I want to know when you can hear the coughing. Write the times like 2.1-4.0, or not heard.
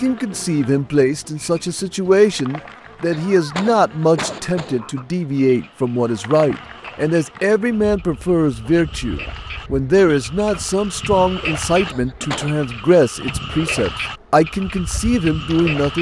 3.1-5.0, 11.8-12.6.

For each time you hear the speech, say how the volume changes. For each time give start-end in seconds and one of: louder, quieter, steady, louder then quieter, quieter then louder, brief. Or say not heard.
0.0-15.9 steady.